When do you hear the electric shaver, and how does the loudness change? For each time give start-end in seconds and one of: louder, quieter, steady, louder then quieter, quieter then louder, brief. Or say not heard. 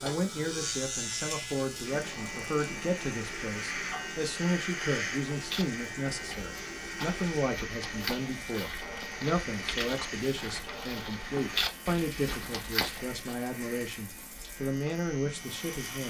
0.0-16.0 quieter.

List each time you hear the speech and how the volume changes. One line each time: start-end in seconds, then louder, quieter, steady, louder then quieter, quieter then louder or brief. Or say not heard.
0.0-16.0 steady.